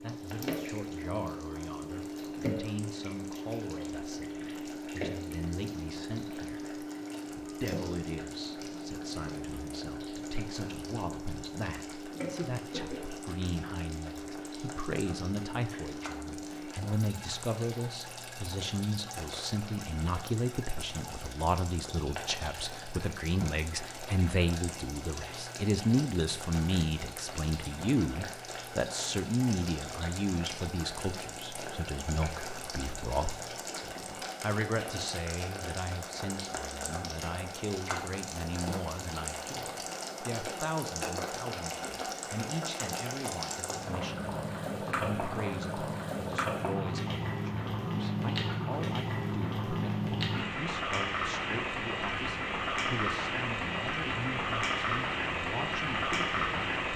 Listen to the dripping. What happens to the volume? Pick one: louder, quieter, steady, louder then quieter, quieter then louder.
quieter.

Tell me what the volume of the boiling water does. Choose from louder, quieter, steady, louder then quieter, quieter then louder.
louder.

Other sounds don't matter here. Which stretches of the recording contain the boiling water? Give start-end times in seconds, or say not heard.
0.0-56.9.